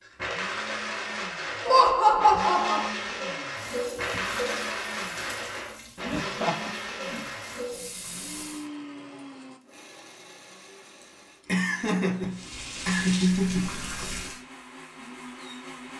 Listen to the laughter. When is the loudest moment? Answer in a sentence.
The loudest moment of the laughter is at 2 seconds.